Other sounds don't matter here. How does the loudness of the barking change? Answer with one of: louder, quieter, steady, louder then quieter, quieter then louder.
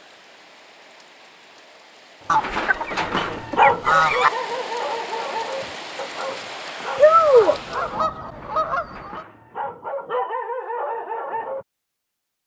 quieter then louder.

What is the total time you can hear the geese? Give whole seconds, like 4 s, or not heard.
4 s.